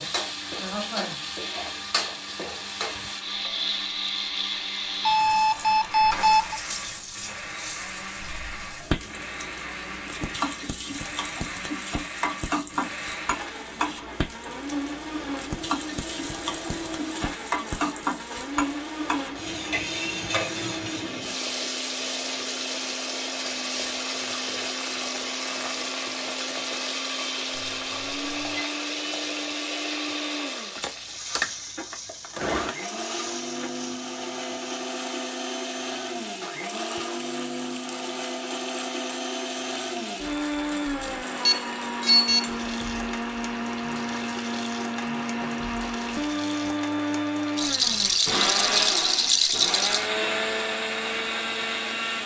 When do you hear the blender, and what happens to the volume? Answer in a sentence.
The blender can be heard from 0.0 to 52.2 s, getting louder.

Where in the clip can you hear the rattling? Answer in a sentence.
You can hear the rattling from 47.5 to 50.1 s.